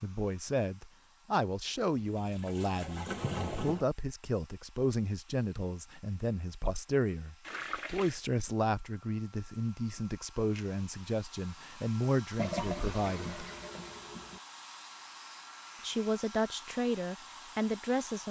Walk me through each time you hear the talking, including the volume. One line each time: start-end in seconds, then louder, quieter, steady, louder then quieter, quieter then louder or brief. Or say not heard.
0.0-13.4 steady
15.8-18.2 brief.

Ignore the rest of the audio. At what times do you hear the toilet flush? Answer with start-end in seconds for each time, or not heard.
2.1-3.9, 7.5-8.2, 12.3-14.4.